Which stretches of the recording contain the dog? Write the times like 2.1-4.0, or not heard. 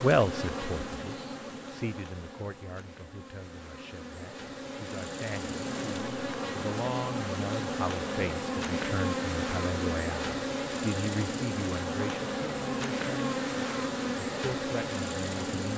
not heard.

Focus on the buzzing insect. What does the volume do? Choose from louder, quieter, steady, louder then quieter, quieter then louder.
louder.